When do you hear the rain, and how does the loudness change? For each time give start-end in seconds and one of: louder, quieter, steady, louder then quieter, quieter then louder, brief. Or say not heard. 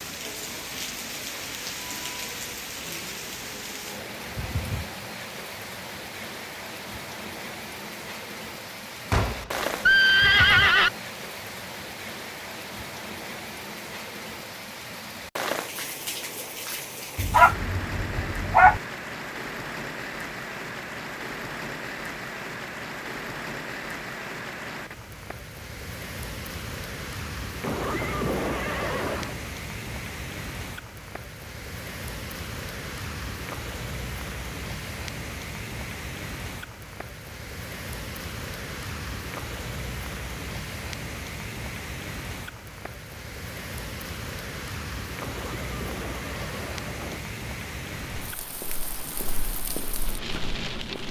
0.0-51.0 steady.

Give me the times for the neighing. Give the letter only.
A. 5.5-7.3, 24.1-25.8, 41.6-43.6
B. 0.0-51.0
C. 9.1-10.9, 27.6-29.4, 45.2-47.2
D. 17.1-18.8
C.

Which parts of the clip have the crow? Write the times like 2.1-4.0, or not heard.
not heard.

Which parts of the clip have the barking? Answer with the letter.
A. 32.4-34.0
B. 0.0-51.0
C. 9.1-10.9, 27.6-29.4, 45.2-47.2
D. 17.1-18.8
D.